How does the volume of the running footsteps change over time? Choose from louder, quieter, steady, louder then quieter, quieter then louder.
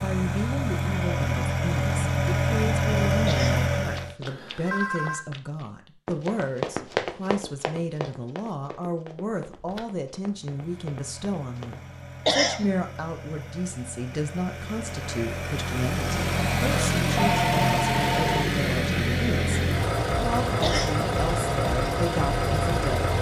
louder then quieter.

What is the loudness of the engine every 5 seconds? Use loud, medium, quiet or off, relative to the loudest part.
loud, off, quiet, loud, loud.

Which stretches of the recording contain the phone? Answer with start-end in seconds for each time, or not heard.
4.2-5.2, 9.4-9.8, 17.1-18.6.